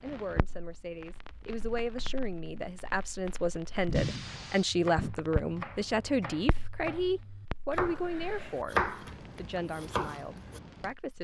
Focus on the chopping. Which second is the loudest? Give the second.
9 s.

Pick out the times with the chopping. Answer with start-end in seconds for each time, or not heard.
4.7-10.6.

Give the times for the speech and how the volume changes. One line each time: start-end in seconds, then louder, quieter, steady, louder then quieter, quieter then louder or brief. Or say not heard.
0.0-11.1 louder then quieter.